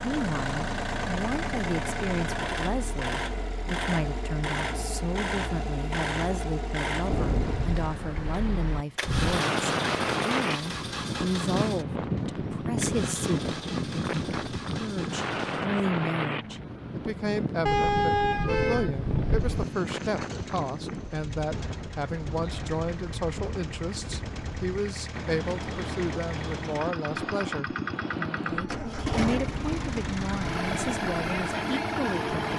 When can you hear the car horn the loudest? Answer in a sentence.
The volume of the car horn peaks at 18 seconds.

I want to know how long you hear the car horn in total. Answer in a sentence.
The car horn can be heard for 2 seconds in total.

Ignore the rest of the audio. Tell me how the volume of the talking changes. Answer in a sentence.
The loudness of the talking stays about the same.